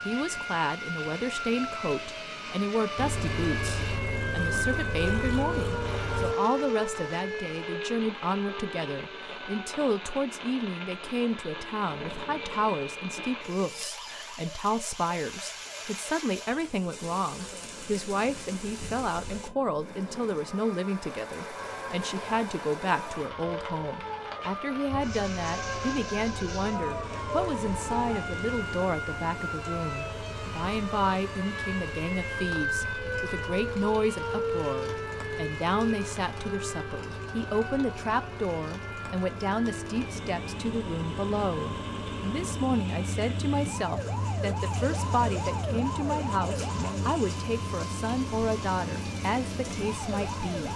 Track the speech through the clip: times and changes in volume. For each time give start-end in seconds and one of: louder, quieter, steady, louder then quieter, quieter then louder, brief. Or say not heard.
0.1-50.7 steady.